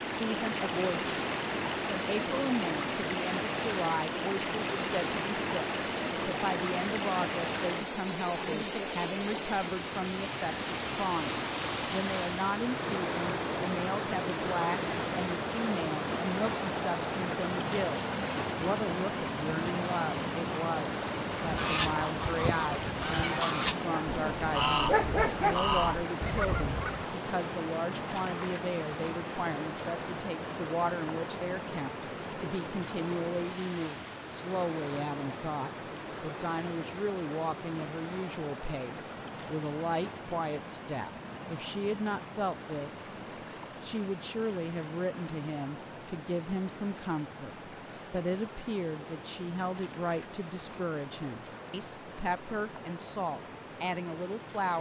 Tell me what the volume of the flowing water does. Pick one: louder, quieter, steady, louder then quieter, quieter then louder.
quieter.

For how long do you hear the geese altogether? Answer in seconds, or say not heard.
6 s.